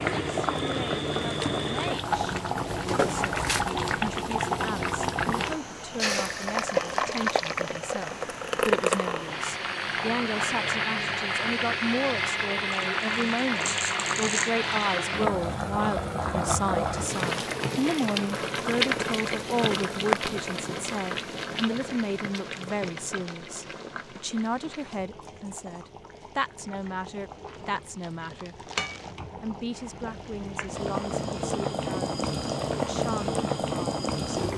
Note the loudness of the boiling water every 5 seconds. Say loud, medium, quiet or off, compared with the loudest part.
loud, loud, loud, loud, medium, quiet, loud.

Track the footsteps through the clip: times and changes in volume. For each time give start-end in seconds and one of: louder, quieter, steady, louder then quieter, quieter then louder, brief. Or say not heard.
not heard.